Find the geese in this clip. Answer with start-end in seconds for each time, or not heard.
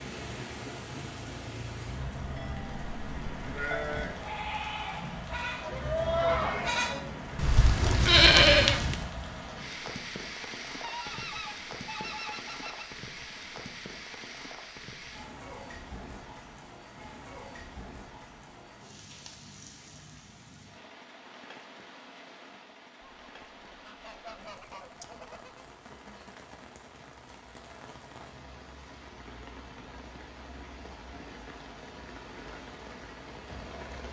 10.8-12.8, 23.0-25.6.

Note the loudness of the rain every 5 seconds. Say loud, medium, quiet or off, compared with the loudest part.
loud, loud, loud, medium, medium, medium, medium.